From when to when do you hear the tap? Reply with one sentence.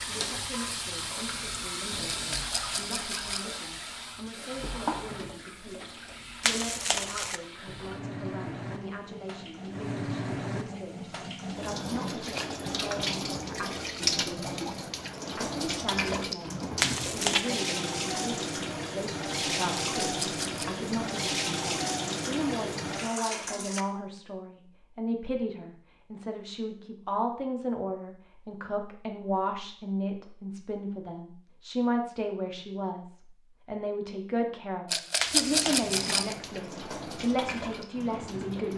The tap can be heard from 0.0 to 23.9 s and from 35.4 to 38.7 s.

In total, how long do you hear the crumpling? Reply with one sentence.
You can hear the crumpling for 3 seconds altogether.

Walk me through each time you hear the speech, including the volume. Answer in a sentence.
You can hear the speech from 0.0 to 38.7 s, getting louder.